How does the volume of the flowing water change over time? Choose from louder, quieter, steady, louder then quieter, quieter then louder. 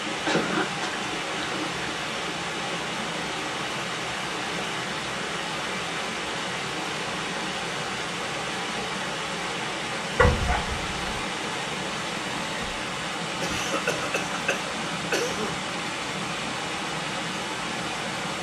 steady.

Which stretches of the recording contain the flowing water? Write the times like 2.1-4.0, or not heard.
0.0-18.3.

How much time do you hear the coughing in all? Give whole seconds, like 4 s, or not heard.
4 s.